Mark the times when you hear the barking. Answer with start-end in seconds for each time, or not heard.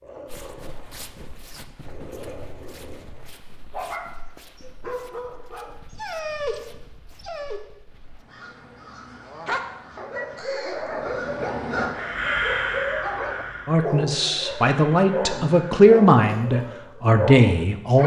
0.0-7.6, 9.2-18.0.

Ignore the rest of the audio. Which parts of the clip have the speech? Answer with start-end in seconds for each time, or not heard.
13.7-18.0.